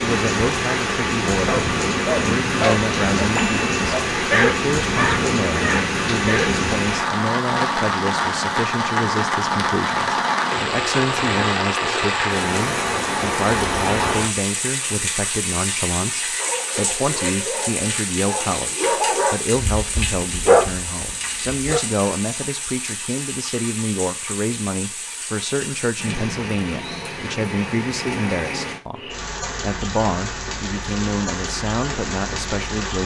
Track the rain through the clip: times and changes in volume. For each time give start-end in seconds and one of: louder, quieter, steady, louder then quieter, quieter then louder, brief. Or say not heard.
0.0-33.0 quieter.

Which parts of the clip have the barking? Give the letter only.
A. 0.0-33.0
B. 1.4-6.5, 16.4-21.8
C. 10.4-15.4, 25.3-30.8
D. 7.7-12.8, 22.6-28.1
B.